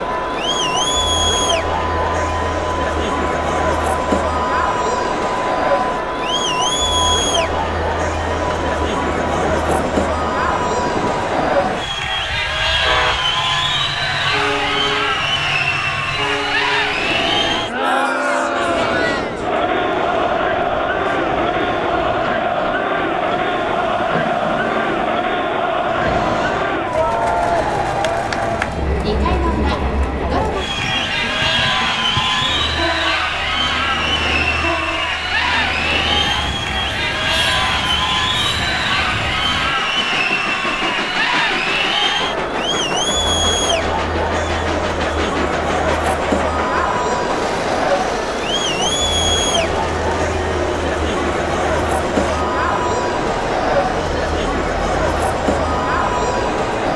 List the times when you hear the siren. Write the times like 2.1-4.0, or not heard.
not heard.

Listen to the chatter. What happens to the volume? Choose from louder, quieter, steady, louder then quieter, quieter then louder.
steady.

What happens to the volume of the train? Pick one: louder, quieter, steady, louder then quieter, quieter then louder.
steady.